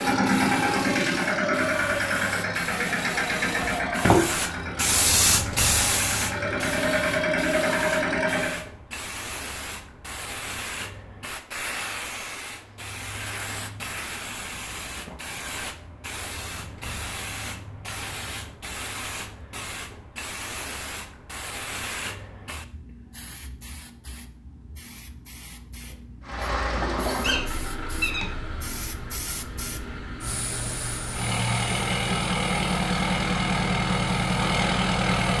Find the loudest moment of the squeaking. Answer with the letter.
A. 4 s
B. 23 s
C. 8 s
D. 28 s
A.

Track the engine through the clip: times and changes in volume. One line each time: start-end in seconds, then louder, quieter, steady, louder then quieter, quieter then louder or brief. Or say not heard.
0.0-8.7 quieter then louder
26.2-35.3 quieter then louder.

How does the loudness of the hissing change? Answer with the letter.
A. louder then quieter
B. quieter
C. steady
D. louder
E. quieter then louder
B.